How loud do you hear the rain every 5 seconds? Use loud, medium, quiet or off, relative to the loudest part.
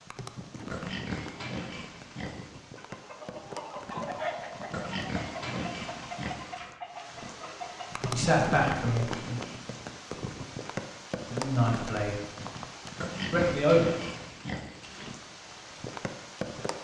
medium, loud, loud, loud.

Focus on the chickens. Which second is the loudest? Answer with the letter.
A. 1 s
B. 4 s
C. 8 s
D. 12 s
B.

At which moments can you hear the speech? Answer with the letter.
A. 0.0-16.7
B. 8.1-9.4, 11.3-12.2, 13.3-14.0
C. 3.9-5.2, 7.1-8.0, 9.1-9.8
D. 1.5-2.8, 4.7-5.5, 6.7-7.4
B.